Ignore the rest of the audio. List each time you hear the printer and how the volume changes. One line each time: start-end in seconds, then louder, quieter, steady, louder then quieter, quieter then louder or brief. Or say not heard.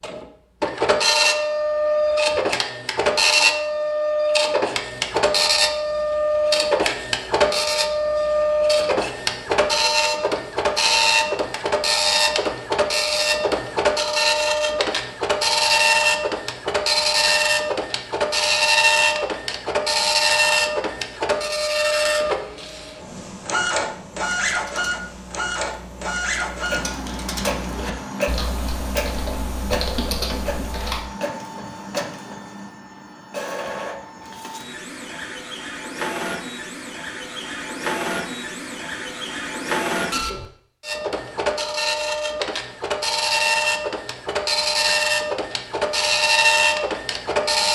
0.0-47.6 quieter then louder.